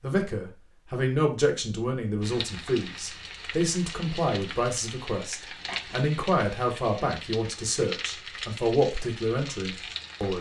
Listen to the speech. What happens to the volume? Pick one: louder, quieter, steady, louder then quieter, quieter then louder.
steady.